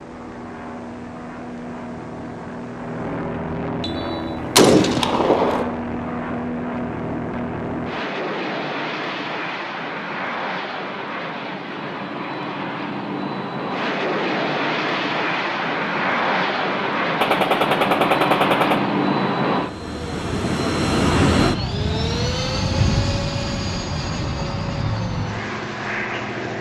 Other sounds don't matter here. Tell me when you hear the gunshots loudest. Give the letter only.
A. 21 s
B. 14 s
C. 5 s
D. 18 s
C.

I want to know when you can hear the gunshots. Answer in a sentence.
The gunshots can be heard from 3.8 to 5.7 s and from 17.2 to 18.8 s.